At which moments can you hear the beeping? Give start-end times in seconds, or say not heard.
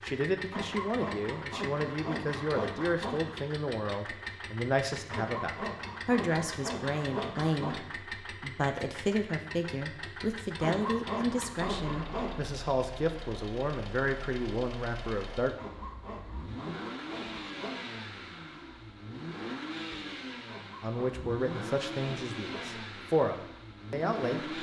not heard.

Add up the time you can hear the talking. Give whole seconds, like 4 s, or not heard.
19 s.